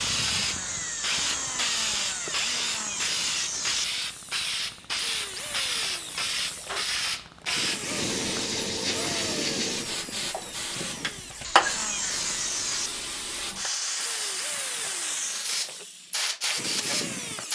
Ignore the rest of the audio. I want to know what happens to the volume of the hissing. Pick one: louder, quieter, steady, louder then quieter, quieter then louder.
steady.